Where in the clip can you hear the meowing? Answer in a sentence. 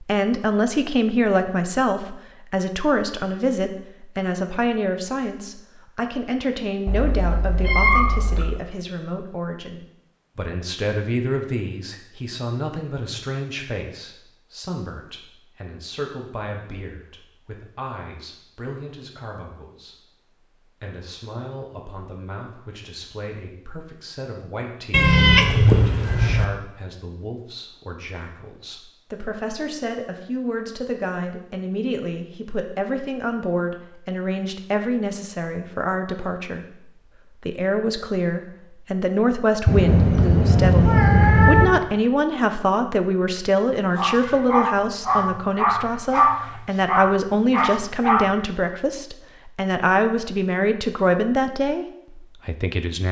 You can hear the meowing from 6.8 to 8.5 s, from 24.9 to 26.4 s and from 39.6 to 41.7 s.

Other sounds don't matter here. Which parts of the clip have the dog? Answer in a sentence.
You can hear the dog from 44.0 to 48.4 s.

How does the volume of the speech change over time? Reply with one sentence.
The loudness of the speech goes down, then up.